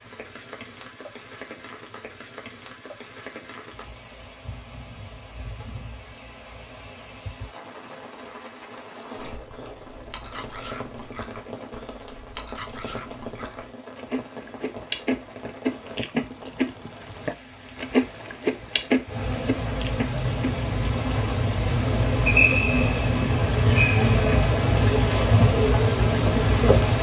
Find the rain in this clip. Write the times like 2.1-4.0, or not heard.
0.0-26.9.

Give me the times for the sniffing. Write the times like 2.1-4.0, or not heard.
not heard.